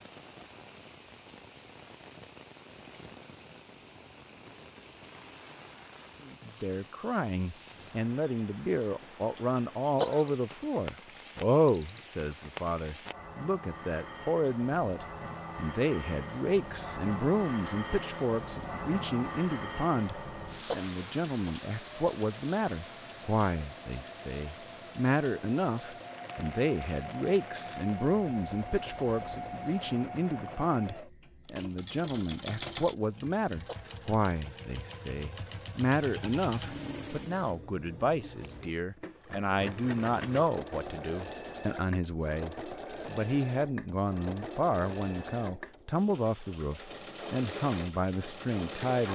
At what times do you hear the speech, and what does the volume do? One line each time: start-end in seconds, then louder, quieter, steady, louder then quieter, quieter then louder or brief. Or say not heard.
6.2-49.1 steady.